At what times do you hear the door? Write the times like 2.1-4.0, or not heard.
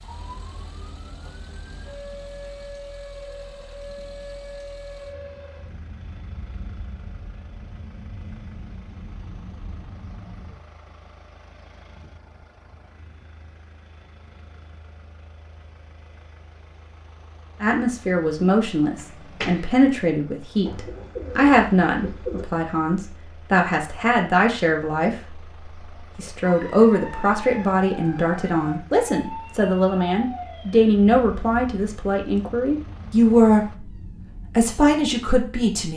18.9-19.7.